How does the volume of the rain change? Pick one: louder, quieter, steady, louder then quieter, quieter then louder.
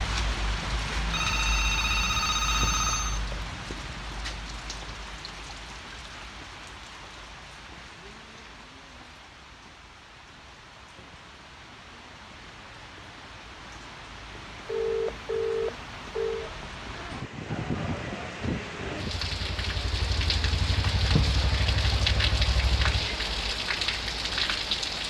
quieter then louder.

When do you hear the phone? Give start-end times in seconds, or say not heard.
1.1-3.5, 14.7-16.5.